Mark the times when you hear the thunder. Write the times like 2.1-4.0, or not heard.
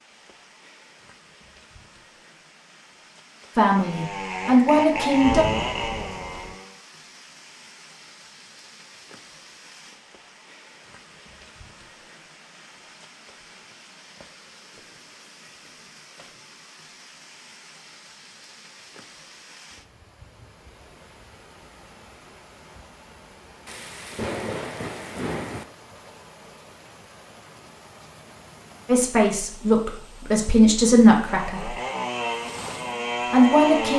5.2-6.5, 23.6-25.6.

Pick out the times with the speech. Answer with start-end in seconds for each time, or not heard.
3.5-5.5, 28.9-31.8, 33.3-33.9.